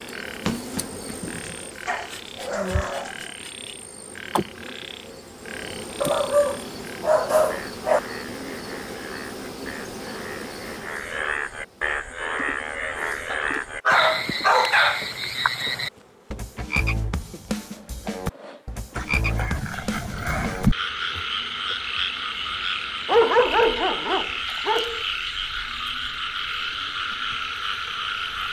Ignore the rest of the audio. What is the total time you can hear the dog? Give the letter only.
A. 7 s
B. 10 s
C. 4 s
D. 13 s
B.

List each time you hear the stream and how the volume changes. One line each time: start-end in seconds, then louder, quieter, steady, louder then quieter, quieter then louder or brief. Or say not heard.
not heard.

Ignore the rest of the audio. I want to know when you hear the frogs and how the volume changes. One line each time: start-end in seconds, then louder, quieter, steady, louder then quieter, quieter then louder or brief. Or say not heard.
0.0-28.4 louder.